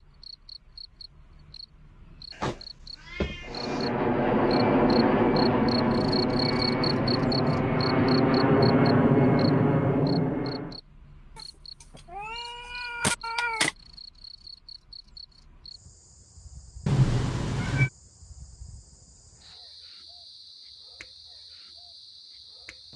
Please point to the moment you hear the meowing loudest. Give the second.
17 s.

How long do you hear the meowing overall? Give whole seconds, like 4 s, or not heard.
5 s.